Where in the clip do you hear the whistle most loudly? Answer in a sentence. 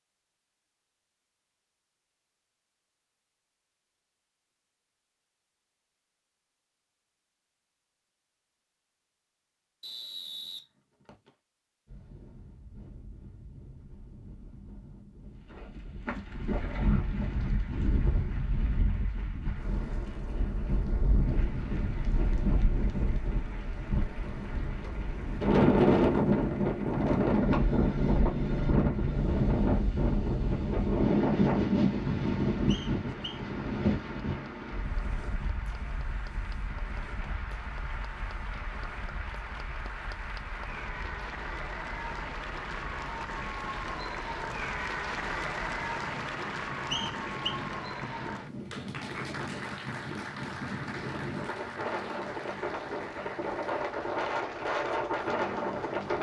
The loudest moment of the whistle is at 47 seconds.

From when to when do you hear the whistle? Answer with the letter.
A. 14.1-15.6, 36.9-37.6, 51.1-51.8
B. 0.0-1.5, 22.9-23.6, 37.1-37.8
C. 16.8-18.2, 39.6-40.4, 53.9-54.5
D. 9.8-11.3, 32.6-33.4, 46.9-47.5
D.